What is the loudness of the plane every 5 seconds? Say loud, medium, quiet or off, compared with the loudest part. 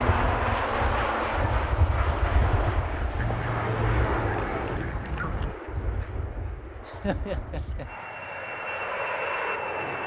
loud, medium.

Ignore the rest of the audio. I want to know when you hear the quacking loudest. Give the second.
4 s.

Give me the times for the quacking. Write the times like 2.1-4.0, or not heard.
3.1-5.5.